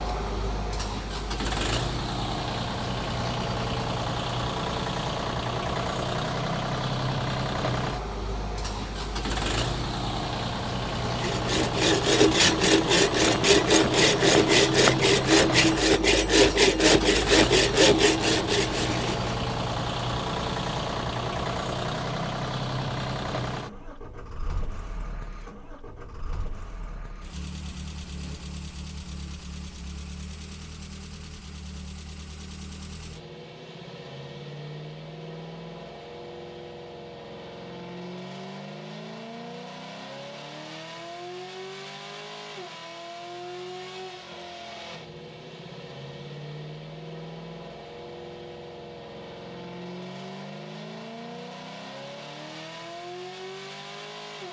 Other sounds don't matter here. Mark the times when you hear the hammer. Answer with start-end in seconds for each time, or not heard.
not heard.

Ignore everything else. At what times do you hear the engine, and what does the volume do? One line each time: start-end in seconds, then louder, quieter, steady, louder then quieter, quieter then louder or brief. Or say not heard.
0.0-54.4 quieter.